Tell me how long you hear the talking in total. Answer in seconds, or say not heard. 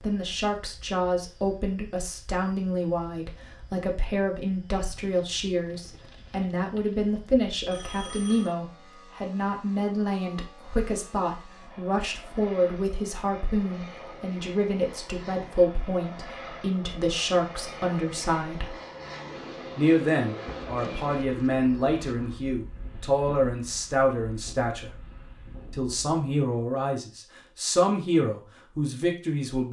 28 s.